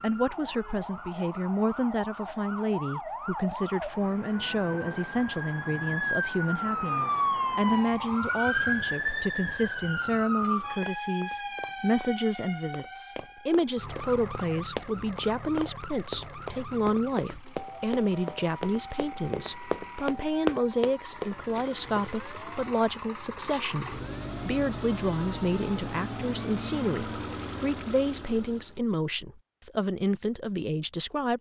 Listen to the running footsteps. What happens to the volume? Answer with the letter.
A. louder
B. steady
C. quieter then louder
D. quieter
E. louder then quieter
A.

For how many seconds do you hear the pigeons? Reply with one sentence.
The pigeons can't be heard in this clip.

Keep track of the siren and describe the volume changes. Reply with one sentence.
The loudness of the siren goes up, then down.